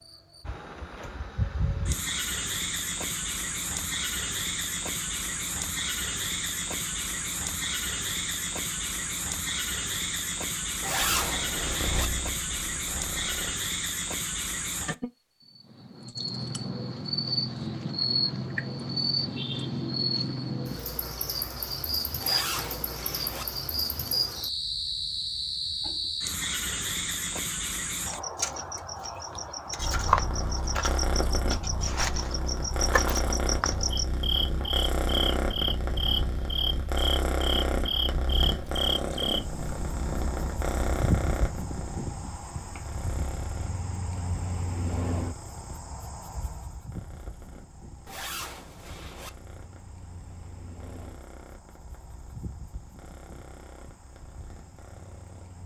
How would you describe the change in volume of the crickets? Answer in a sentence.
The loudness of the crickets goes down.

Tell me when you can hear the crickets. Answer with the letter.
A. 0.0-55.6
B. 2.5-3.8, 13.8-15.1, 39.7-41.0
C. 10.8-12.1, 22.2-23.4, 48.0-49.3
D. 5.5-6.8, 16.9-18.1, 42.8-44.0
A.